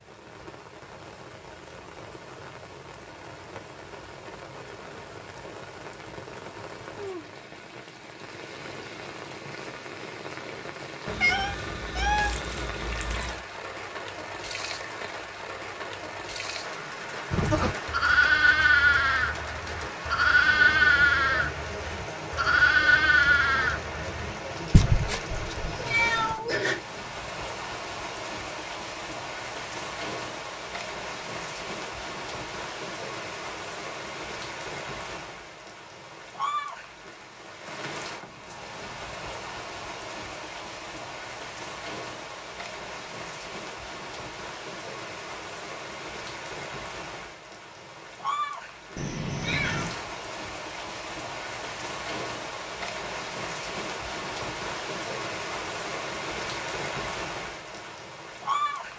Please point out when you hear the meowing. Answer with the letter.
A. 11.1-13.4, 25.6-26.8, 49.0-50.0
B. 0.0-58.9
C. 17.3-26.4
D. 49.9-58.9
A.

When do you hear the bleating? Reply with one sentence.
You can hear the bleating from 17.3 to 26.4 s.